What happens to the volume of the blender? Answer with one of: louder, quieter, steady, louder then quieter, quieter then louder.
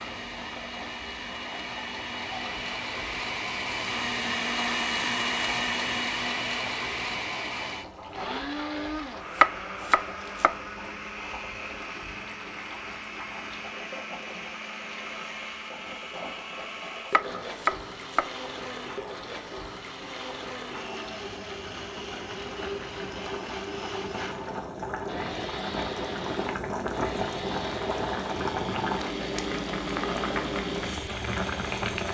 quieter.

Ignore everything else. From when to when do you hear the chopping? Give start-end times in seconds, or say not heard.
9.4-10.5, 17.1-18.2.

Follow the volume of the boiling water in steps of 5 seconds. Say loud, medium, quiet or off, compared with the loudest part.
quiet, quiet, quiet, quiet, medium, loud, loud.